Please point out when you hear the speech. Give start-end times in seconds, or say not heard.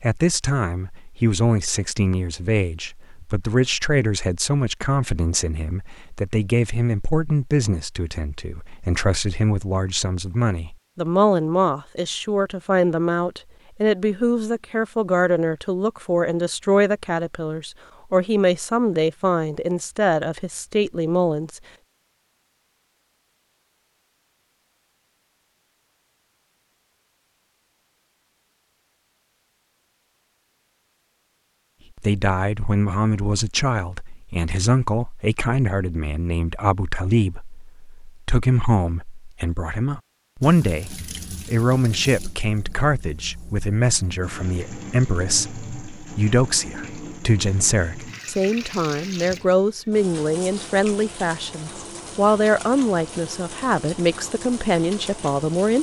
0.0-21.6, 31.9-55.7.